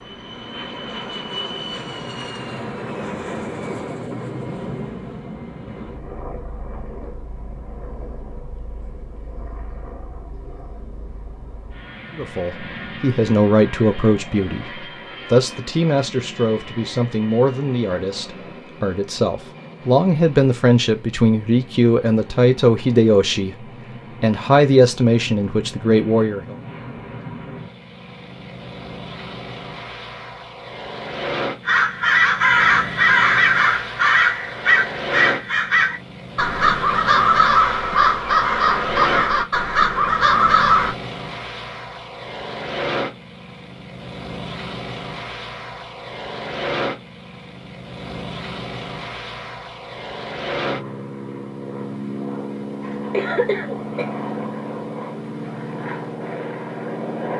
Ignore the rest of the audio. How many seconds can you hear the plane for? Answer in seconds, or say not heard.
57 s.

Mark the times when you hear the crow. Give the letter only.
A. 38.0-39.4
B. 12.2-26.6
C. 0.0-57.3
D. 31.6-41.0
D.